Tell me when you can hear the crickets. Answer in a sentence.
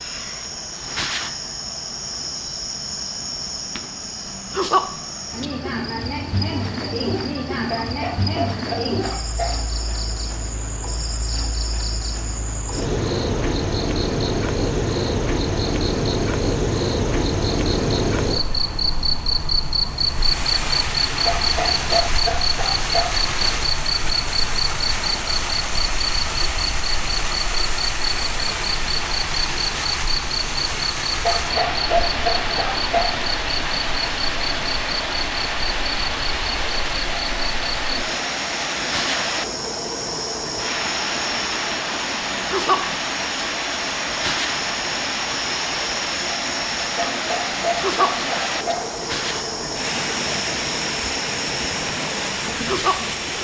The crickets can be heard from 0.0 to 53.4 s.